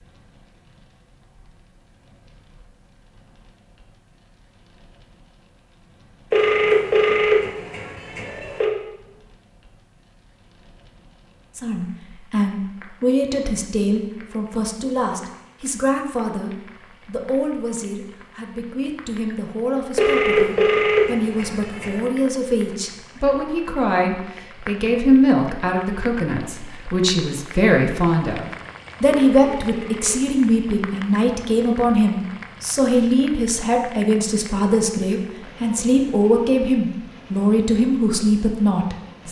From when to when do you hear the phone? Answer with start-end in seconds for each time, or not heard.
6.3-8.7, 19.9-22.0, 29.1-30.2.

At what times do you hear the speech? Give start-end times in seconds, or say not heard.
11.6-39.2.